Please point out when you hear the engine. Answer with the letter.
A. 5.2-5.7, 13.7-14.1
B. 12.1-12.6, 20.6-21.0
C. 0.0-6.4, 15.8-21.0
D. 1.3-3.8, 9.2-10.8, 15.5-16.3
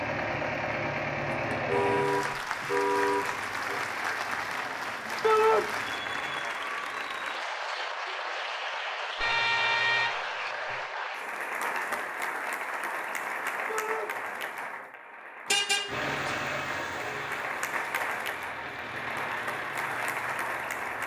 C.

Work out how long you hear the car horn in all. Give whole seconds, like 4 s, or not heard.
5 s.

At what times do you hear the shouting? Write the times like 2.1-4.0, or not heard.
5.2-5.7, 13.7-14.1.